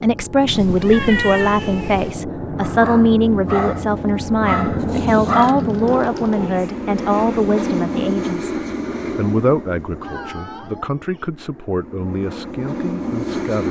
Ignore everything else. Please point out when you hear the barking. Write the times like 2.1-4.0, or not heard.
2.5-6.5.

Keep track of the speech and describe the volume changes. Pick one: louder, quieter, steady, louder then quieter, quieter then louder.
quieter.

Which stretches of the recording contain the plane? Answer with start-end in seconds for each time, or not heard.
0.0-13.6.